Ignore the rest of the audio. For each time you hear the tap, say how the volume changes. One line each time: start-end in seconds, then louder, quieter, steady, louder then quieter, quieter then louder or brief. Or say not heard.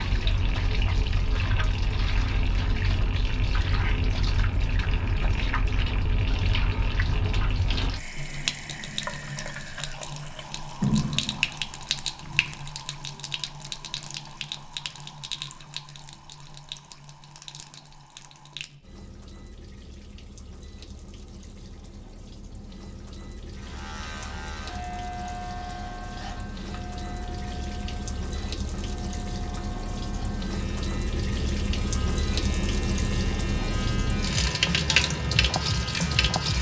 0.0-36.5 quieter then louder.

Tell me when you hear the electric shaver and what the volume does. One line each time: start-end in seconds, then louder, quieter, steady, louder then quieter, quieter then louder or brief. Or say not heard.
23.5-36.5 quieter then louder.